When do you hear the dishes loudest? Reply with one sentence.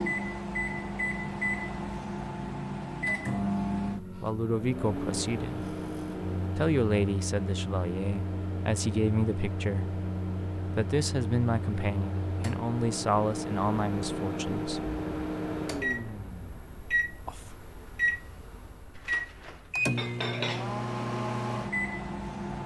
The loudest moment of the dishes is at 20 seconds.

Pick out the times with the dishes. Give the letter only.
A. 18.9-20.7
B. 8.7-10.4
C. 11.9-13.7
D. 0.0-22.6
A.